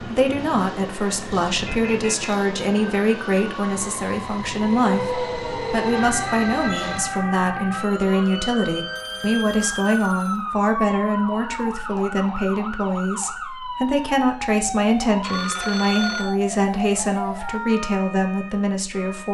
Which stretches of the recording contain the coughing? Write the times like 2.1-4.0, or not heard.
not heard.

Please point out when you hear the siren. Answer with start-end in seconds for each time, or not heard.
4.7-19.3.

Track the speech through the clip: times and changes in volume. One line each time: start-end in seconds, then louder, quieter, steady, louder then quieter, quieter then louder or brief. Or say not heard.
0.0-19.3 steady.